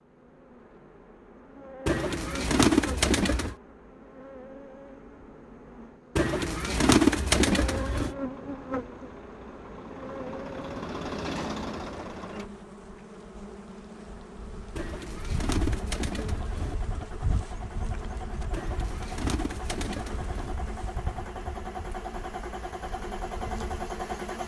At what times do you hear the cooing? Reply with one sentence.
The cooing can be heard from 1.9 to 3.5 s, from 6.2 to 8.2 s, from 14.8 to 16.8 s and from 18.5 to 20.6 s.